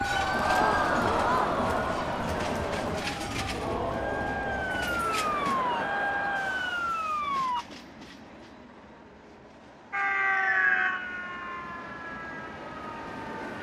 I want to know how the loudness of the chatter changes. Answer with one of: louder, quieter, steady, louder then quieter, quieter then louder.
quieter.